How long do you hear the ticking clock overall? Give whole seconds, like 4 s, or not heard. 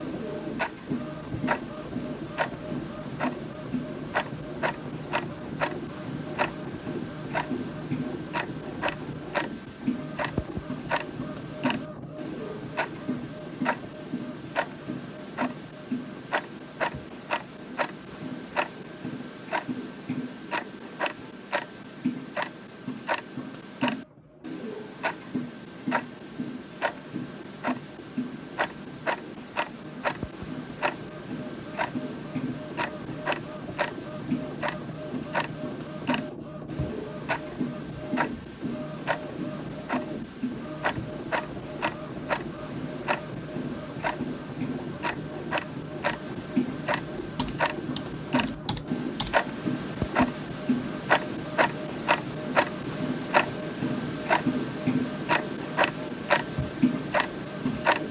58 s.